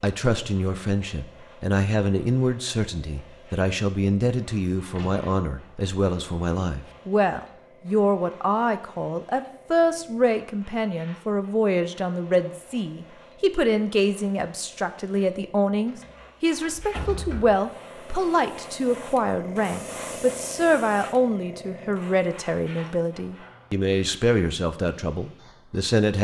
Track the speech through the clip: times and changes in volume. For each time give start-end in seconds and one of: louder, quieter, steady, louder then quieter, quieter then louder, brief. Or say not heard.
0.0-26.1 steady.